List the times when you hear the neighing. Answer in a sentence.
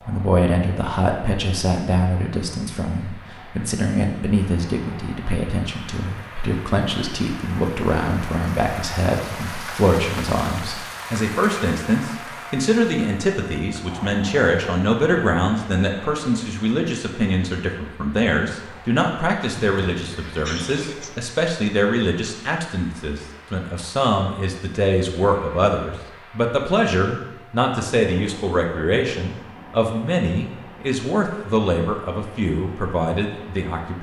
You can hear the neighing from 19.6 to 21.2 s.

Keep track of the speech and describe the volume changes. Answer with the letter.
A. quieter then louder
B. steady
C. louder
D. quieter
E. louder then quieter
B.